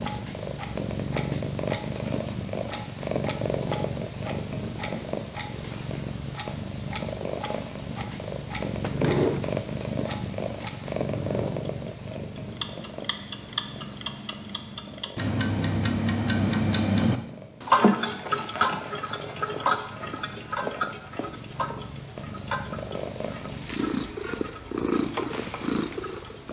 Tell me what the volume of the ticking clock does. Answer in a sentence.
The volume of the ticking clock goes up, then down.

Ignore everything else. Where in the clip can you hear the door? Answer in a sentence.
You can hear the door from 8.8 to 9.4 s.